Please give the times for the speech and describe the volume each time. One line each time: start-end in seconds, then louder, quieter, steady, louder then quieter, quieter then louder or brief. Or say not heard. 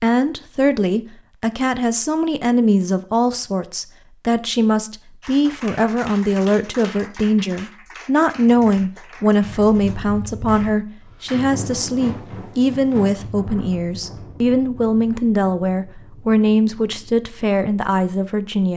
0.0-18.7 steady.